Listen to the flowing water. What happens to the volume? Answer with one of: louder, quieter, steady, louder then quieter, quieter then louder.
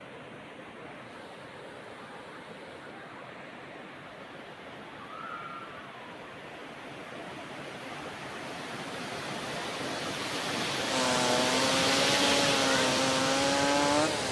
louder.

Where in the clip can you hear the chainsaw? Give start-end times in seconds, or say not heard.
10.8-14.2.